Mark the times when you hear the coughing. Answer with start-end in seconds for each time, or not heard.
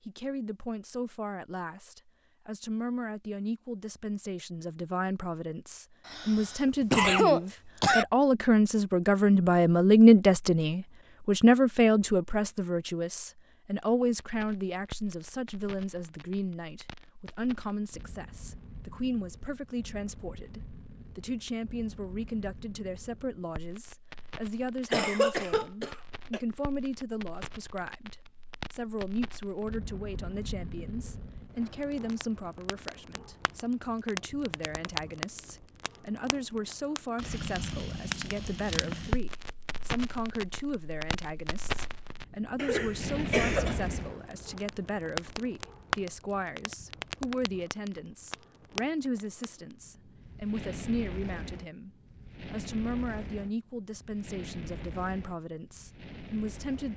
6.0-8.1, 24.9-26.4, 42.5-43.8.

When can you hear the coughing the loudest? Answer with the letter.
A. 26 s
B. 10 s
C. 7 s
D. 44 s
C.